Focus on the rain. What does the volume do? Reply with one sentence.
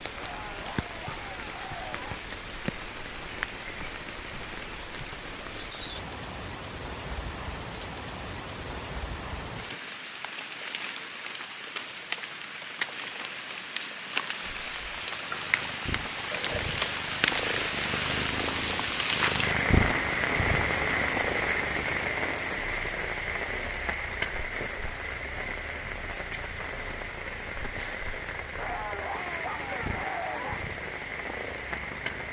The loudness of the rain goes up, then down.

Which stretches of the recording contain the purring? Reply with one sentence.
You can hear the purring from 14.7 to 32.2 s.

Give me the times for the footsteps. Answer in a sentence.
You can't hear the footsteps here.